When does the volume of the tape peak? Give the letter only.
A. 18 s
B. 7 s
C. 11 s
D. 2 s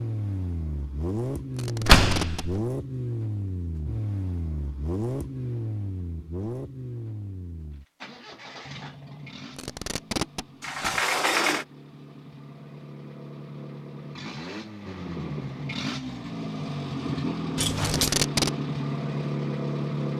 A.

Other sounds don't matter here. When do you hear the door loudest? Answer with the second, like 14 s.
2 s.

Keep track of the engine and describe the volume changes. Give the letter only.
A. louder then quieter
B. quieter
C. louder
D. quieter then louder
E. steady
D.